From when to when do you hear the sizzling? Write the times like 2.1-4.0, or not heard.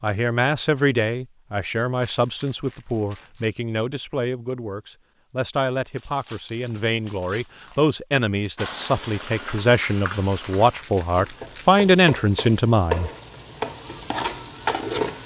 8.6-15.2.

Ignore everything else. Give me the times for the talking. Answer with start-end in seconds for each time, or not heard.
0.0-13.1.